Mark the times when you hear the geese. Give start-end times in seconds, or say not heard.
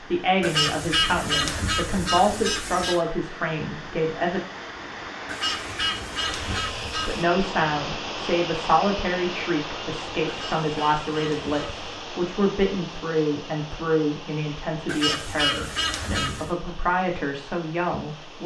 0.4-3.0, 5.2-7.2, 10.2-11.8, 14.8-16.5.